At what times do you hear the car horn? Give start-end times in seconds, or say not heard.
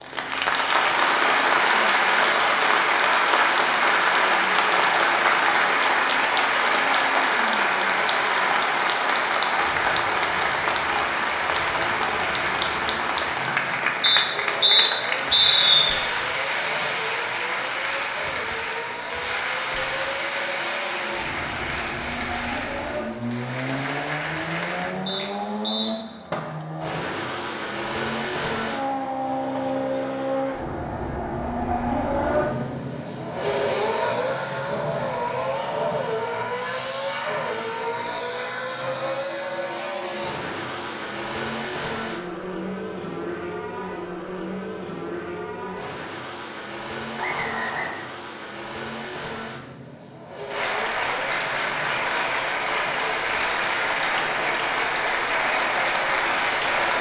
not heard.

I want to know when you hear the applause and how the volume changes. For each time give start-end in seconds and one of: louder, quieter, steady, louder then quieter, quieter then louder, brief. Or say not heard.
0.0-25.4 quieter
50.5-56.9 steady.